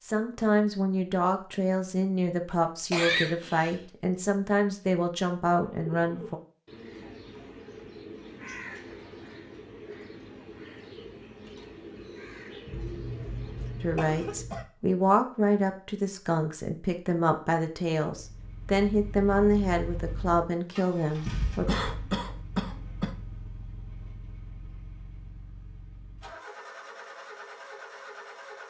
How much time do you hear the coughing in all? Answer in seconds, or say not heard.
4 s.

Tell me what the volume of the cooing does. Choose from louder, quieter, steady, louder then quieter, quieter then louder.
steady.